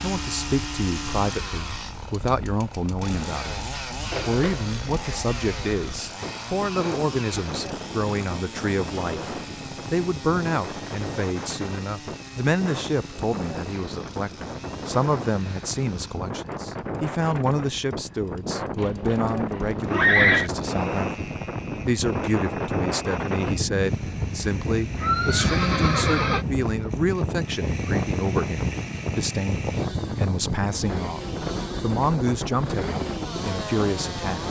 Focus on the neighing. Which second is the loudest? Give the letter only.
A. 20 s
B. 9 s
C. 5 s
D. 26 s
A.